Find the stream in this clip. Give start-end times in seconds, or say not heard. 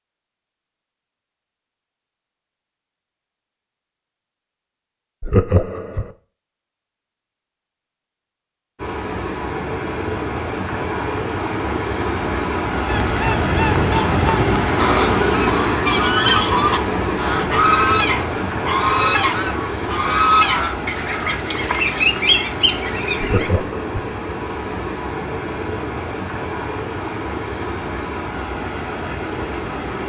8.8-30.0.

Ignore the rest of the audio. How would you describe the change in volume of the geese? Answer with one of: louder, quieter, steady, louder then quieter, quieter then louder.
steady.